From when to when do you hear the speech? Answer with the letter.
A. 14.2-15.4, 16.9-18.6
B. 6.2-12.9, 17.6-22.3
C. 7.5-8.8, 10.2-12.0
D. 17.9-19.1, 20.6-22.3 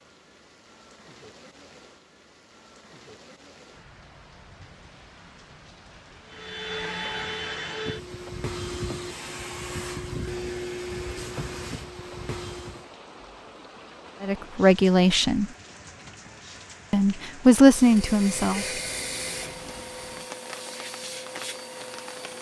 A.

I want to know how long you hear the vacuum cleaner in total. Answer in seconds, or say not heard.
11 s.